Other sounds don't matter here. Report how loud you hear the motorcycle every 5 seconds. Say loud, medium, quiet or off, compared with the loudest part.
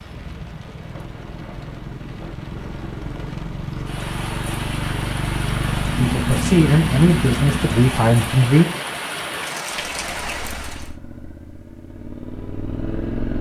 medium, loud, medium.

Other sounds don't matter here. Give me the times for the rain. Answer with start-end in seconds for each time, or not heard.
0.0-10.9.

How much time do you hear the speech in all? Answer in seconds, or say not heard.
3 s.